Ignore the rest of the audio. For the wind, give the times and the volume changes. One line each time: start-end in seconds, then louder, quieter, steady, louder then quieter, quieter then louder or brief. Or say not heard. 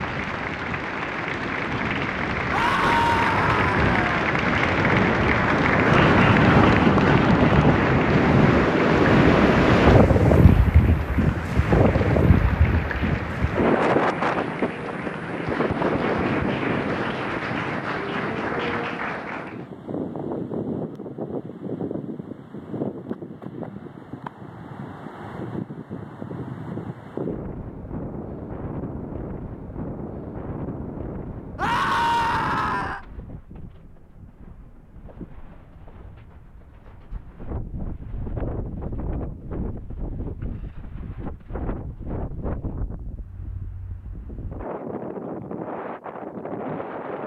0.0-47.2 quieter.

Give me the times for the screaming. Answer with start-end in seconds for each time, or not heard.
2.5-4.2, 31.6-33.0.